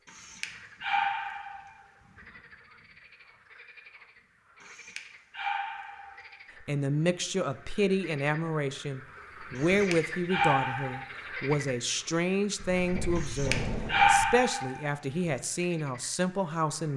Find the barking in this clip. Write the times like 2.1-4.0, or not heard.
0.1-1.8, 4.6-6.2, 9.6-11.1, 13.2-14.8.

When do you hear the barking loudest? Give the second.
14 s.